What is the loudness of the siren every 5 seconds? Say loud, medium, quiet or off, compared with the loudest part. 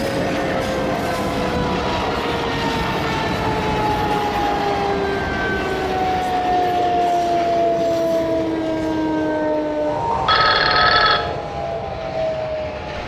medium, loud, medium.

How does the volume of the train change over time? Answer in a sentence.
The volume of the train goes down.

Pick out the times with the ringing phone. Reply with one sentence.
You can hear the ringing phone from 10.1 to 11.2 s.